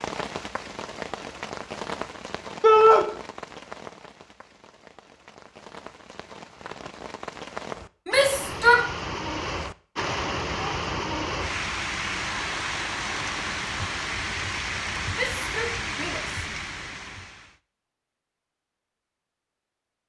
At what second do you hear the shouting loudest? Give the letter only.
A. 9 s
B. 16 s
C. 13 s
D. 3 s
D.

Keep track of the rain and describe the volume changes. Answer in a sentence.
The loudness of the rain goes down, then up.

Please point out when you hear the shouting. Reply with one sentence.
The shouting can be heard from 2.6 to 3.0 s, from 8.1 to 8.8 s and from 15.2 to 16.4 s.